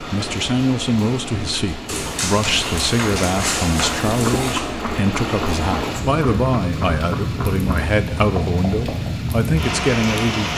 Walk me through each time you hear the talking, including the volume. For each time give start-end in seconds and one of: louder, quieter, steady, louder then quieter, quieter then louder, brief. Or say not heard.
0.0-10.5 steady.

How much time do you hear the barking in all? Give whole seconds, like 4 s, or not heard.
3 s.